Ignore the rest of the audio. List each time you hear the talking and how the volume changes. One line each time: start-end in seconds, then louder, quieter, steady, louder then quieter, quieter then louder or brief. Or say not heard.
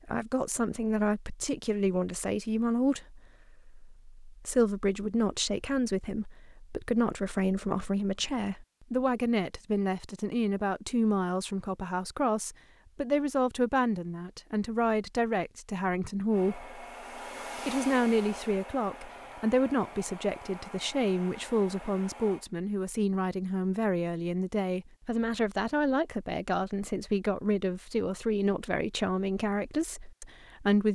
0.1-16.9 steady
17.6-30.8 steady.